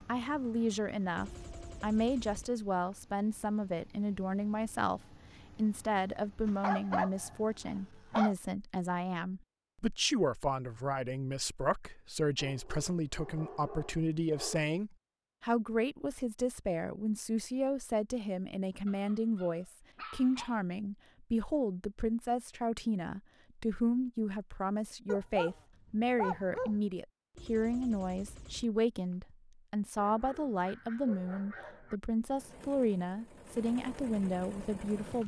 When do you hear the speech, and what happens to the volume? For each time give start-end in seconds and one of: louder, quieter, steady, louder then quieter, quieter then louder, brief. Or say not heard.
0.1-35.2 steady.